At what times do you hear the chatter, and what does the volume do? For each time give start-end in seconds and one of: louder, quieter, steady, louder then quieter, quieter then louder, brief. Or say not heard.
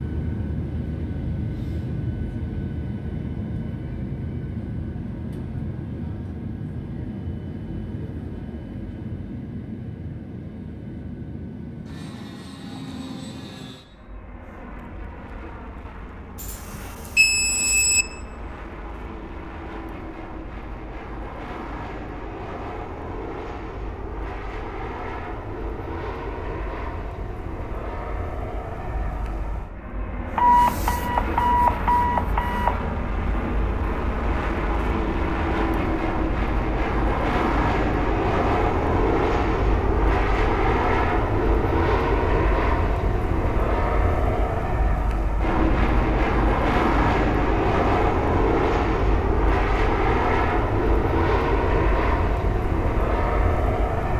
not heard.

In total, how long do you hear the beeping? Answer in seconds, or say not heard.
4 s.